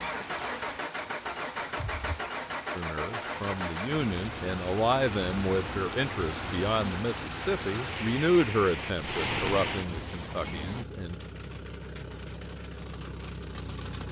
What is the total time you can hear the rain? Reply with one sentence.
You can hear the rain for 11 seconds altogether.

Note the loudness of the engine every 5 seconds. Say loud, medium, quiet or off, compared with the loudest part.
loud, medium, medium.